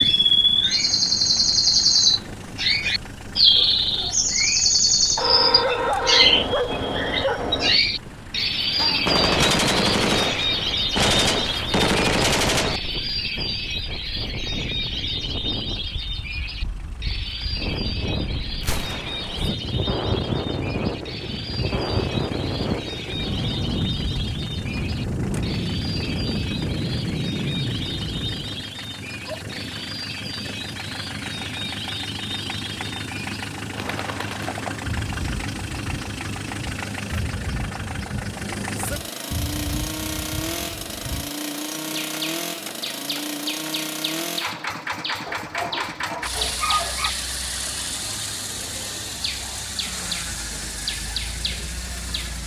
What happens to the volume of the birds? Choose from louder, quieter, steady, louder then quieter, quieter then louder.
quieter.